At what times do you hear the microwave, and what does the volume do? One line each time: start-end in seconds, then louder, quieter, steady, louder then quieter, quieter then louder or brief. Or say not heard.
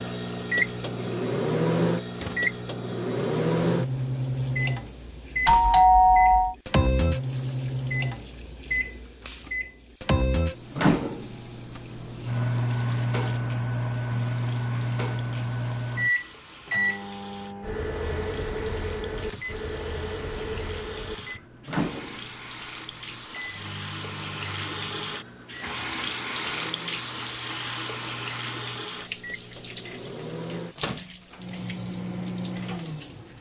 0.0-33.3 quieter.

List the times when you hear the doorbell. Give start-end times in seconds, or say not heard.
5.5-6.5.